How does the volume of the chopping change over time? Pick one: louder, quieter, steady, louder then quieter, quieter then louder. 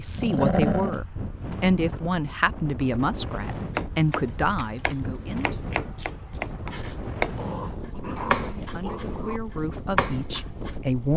louder.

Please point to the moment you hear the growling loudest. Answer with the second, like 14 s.
1 s.